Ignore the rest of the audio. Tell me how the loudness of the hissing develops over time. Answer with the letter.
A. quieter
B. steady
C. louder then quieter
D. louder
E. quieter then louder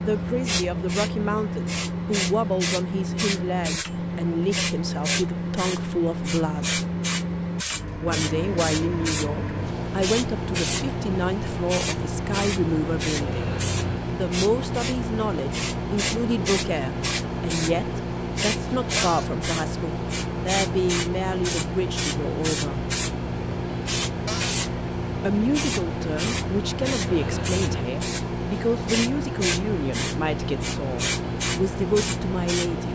B.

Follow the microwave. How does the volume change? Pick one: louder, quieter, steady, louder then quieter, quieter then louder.
steady.